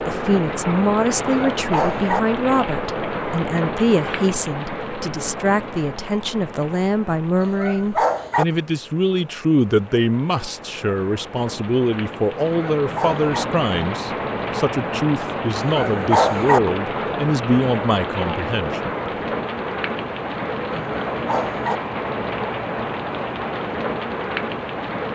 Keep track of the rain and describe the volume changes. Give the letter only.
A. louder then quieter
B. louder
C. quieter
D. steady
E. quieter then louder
E.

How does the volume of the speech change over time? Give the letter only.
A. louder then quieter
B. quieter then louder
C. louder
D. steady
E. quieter
D.